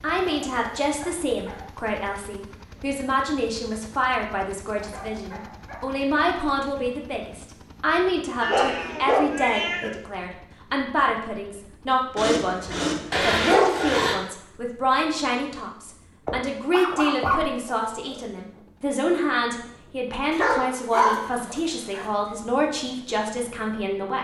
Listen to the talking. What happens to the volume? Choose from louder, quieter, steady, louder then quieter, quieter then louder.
steady.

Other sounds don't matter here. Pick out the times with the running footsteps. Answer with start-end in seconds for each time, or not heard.
not heard.